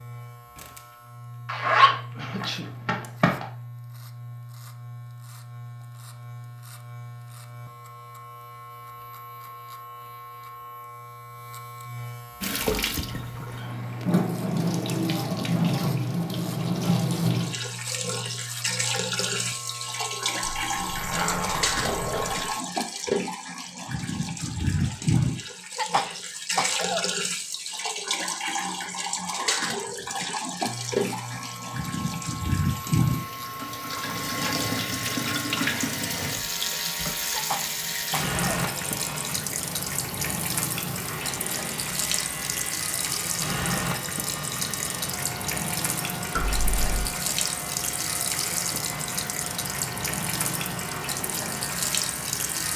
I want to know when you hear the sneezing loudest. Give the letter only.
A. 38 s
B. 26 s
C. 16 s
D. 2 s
B.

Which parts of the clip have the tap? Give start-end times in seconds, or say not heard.
12.4-52.7.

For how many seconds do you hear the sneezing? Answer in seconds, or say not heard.
3 s.